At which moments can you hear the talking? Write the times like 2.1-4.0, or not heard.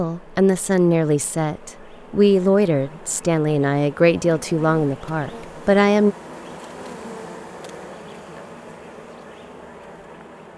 0.0-6.2.